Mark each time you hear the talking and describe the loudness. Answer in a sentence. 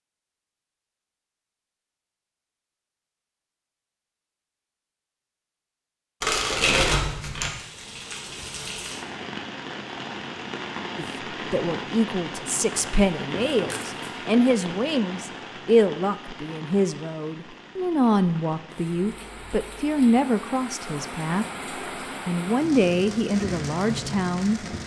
The talking can be heard from 10.9 to 21.4 s, at a steady volume; and briefly from 22.2 to 24.6 s.